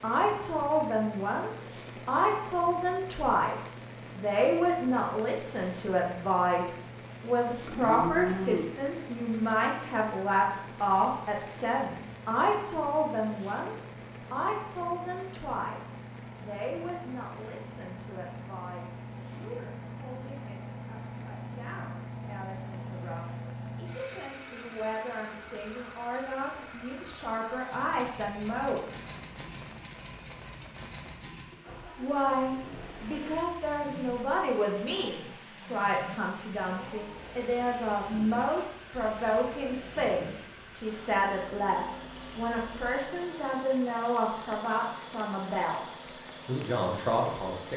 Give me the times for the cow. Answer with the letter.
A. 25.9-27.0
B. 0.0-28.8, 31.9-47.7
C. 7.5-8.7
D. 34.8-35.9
C.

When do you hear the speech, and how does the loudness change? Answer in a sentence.
You can hear the speech from 0.0 to 28.8 s, getting quieter then louder; and from 31.9 to 47.7 s, at a steady volume.